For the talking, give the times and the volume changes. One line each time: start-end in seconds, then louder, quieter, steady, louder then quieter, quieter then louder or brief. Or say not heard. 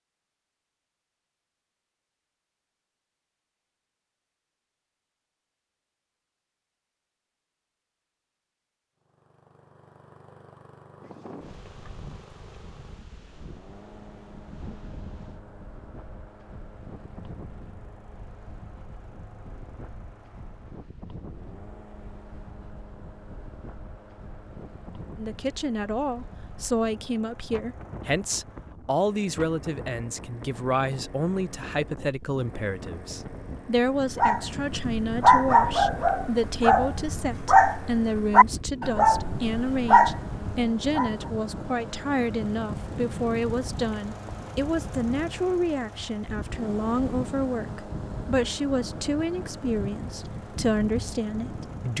25.1-51.9 steady.